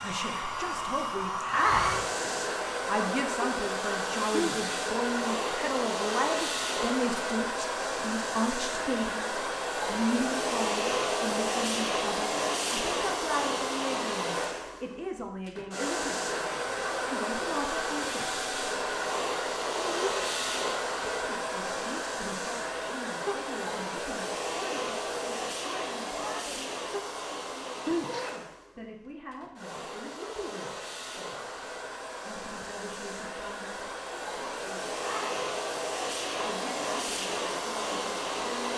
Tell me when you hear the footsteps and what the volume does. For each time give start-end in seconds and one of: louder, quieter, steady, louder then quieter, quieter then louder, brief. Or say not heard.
not heard.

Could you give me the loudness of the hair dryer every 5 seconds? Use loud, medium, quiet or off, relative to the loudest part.
loud, loud, loud, loud, loud, medium, medium, loud.